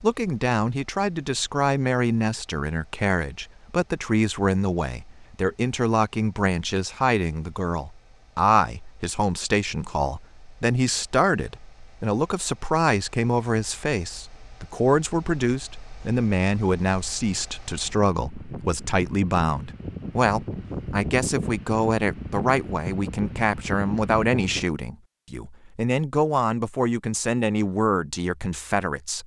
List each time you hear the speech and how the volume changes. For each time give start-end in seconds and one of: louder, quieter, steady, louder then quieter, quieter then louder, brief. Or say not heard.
0.0-29.2 steady.